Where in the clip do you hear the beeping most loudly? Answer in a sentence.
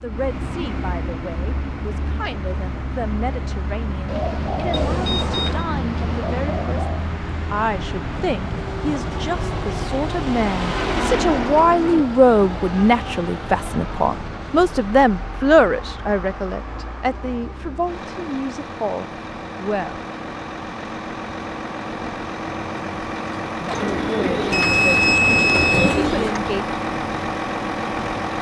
The loudest moment of the beeping is at 25 seconds.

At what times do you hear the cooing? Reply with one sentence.
You can hear the cooing from 4.0 to 7.0 s, from 10.8 to 12.1 s and from 23.7 to 26.4 s.